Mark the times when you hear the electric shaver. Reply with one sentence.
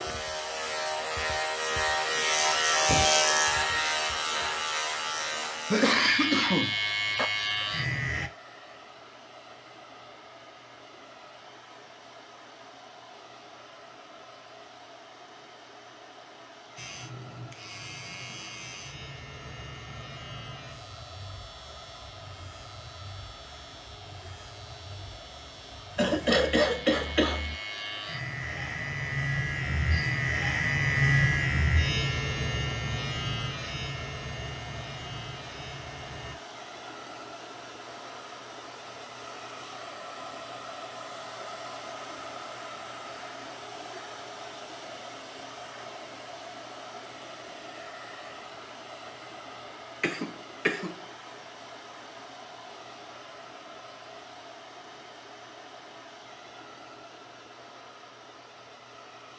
You can hear the electric shaver from 0.0 to 8.3 s and from 16.8 to 36.4 s.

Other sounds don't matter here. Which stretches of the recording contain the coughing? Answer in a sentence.
The coughing can be heard from 5.7 to 7.3 s, from 25.9 to 27.6 s and from 50.0 to 51.0 s.